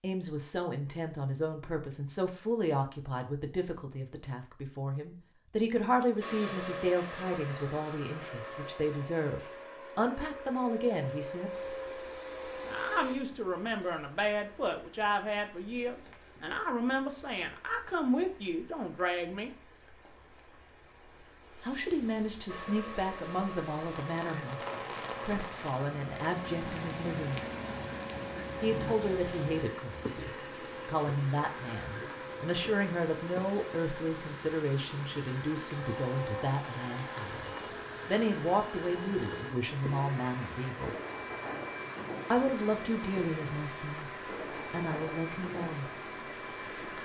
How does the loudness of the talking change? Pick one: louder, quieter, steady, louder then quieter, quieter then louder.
steady.